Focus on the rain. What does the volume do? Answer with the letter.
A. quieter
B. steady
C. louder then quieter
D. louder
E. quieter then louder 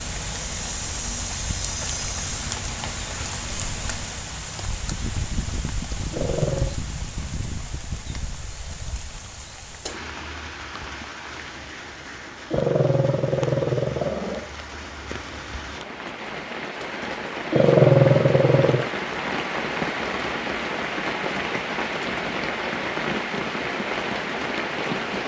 E.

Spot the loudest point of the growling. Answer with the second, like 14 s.
18 s.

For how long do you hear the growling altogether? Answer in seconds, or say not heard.
4 s.